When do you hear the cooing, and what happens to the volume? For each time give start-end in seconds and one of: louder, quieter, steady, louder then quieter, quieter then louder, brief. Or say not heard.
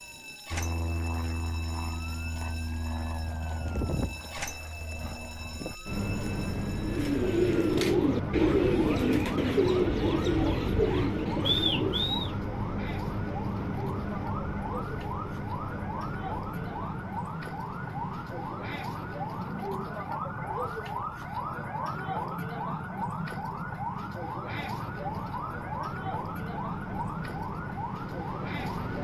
6.8-12.3 steady.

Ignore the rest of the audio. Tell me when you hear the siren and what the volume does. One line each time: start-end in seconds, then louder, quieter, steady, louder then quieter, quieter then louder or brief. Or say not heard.
0.0-28.9 louder.